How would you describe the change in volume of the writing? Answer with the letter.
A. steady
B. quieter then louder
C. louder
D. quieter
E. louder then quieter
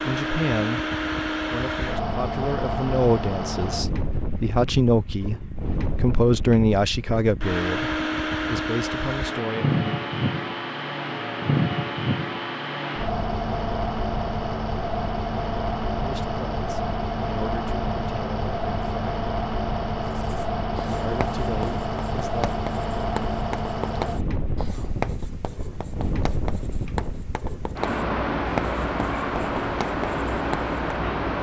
A.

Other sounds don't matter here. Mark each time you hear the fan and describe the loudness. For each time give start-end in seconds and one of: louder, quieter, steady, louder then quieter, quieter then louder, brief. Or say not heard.
0.0-31.3 steady.